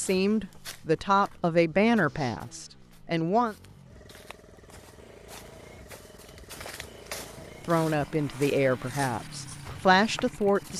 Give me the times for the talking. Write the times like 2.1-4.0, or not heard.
0.0-3.5, 7.4-10.7.